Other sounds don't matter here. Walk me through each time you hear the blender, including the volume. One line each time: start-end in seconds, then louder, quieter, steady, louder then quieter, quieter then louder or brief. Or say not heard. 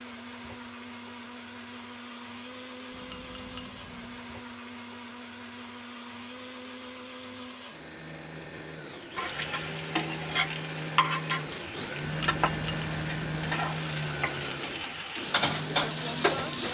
0.0-16.6 louder.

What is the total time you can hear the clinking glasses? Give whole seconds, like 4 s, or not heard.
3 s.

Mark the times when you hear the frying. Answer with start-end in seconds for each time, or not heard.
9.2-16.6.